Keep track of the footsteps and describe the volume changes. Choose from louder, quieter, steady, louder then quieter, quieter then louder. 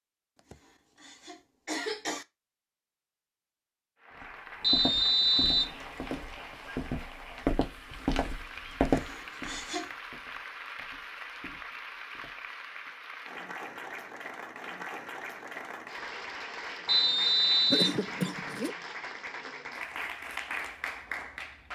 louder then quieter.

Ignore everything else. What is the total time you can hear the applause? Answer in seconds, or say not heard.
18 s.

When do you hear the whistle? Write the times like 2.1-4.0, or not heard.
4.6-5.8, 16.9-18.0.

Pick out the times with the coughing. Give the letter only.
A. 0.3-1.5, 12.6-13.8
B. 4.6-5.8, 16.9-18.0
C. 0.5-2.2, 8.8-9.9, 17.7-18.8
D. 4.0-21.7
C.